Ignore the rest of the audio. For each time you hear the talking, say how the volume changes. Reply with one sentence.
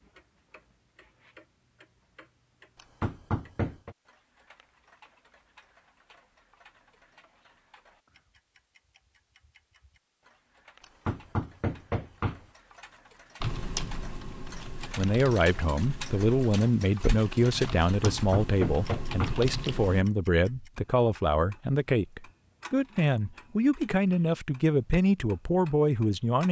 You can hear the talking from 14.9 to 26.4 s, at a steady volume.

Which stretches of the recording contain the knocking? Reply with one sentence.
You can hear the knocking from 3.0 to 4.0 s, from 10.8 to 12.4 s and from 18.0 to 19.4 s.